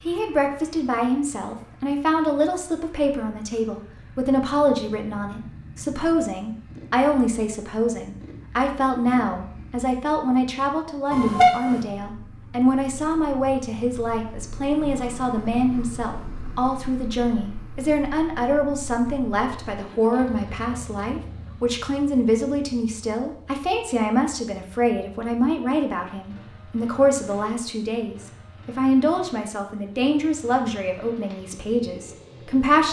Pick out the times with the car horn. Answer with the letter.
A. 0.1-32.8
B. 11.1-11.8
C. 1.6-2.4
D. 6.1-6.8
B.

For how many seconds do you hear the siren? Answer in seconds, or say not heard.
not heard.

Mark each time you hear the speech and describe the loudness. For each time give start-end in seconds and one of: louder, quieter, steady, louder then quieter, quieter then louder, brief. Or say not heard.
0.1-32.8 steady.